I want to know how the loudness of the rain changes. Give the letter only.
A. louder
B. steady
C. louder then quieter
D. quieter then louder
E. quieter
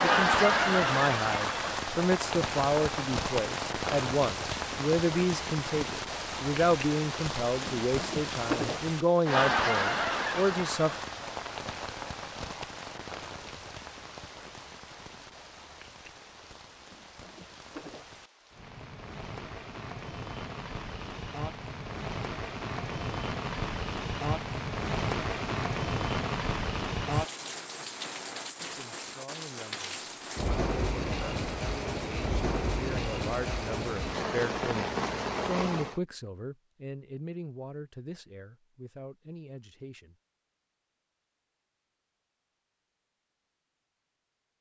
D.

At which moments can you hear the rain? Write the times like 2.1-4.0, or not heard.
0.0-36.0.